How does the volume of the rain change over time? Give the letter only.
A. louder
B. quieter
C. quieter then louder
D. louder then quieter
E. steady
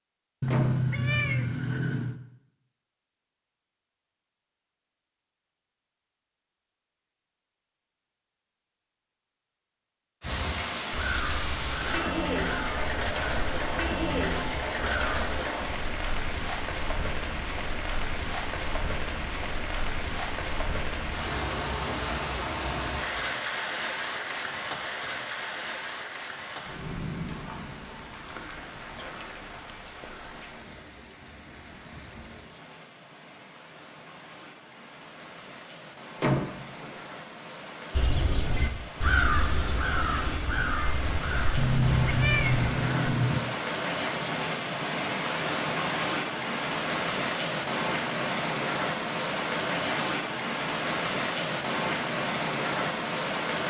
C.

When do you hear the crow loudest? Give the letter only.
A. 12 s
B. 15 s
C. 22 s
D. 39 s
D.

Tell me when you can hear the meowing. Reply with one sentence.
You can hear the meowing from 0.4 to 2.1 s and from 41.5 to 43.4 s.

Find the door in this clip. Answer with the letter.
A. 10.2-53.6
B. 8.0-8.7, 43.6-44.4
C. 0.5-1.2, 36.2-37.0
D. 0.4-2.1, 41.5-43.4
C.